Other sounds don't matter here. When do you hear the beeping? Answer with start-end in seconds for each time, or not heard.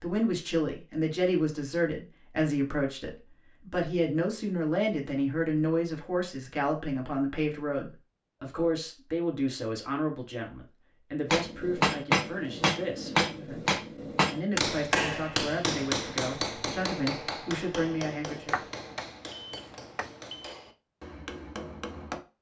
18.5-20.6.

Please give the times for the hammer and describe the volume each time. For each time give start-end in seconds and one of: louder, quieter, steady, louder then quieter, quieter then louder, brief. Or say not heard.
11.2-22.2 quieter.